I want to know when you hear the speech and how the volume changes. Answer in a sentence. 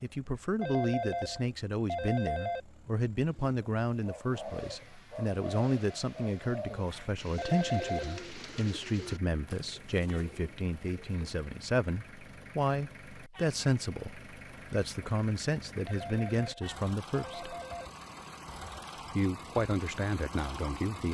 The speech can be heard from 0.0 to 17.6 s, at a steady volume; and briefly from 19.1 to 21.1 s.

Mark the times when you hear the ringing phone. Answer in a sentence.
The ringing phone can be heard from 0.6 to 2.6 s, from 7.3 to 8.2 s and from 15.8 to 17.9 s.